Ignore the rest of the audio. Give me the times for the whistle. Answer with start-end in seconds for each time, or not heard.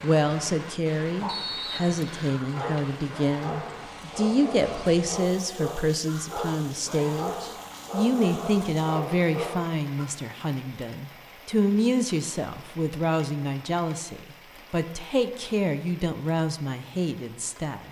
1.2-2.4.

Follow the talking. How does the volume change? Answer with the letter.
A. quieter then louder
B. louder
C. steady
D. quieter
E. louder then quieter
C.